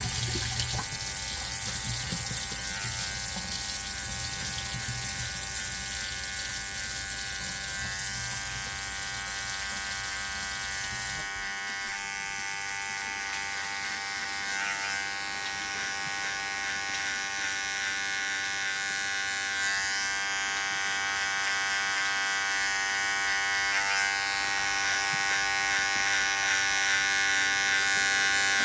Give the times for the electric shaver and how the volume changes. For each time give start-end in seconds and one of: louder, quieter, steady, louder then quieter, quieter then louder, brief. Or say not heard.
0.0-28.6 louder.